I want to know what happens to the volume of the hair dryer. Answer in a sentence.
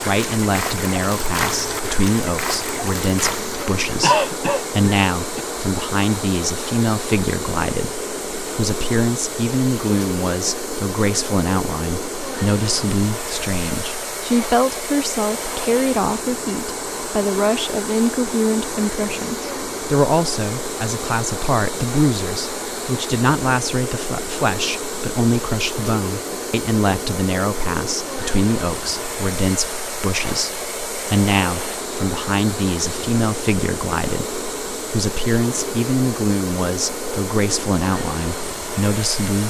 The loudness of the hair dryer stays about the same.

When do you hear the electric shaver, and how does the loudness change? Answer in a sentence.
You can't hear the electric shaver here.